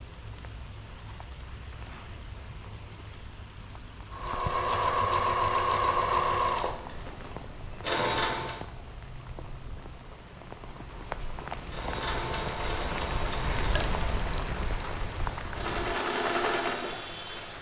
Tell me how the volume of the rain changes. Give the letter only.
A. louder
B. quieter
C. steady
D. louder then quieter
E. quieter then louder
A.